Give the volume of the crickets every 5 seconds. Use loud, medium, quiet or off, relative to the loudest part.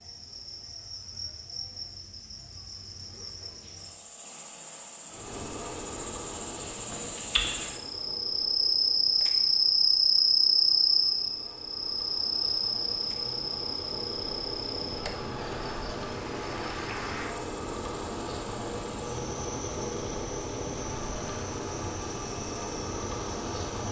quiet, loud, loud, quiet, quiet.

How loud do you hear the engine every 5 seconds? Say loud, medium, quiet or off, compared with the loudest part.
off, medium, medium, loud, loud.